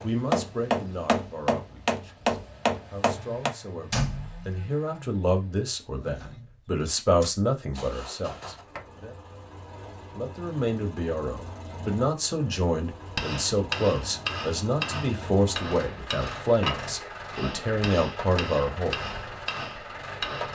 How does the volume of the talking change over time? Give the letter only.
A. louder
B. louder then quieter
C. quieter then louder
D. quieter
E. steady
A.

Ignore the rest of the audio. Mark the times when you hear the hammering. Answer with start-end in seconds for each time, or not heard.
0.0-3.5, 13.1-20.4.